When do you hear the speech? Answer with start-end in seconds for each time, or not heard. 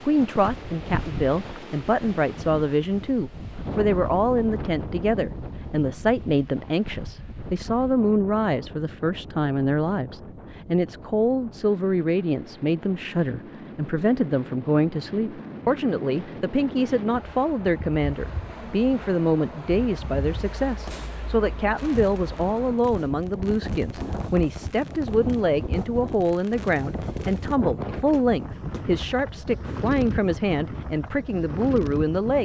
0.0-32.3.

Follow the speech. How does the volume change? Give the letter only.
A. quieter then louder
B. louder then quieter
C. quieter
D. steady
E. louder
D.